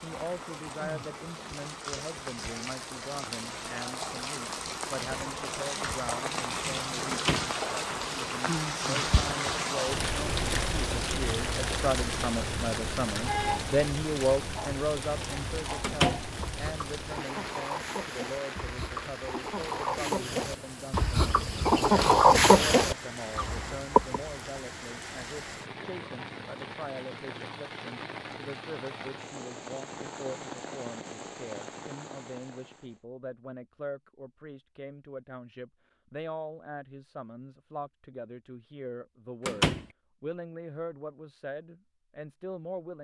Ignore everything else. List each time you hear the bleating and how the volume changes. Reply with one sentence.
The bleating can't be heard in this clip.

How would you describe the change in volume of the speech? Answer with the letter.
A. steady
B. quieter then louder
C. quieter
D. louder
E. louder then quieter
E.